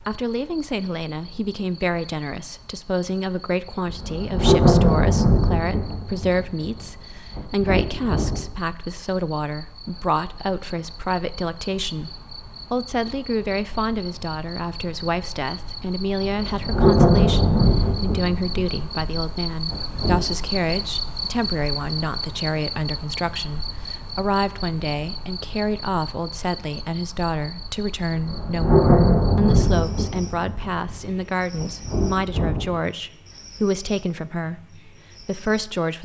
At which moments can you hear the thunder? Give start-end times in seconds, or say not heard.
3.9-8.4, 16.2-20.3, 28.1-32.8.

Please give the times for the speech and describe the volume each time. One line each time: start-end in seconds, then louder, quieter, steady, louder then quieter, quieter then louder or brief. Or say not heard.
0.1-35.9 steady.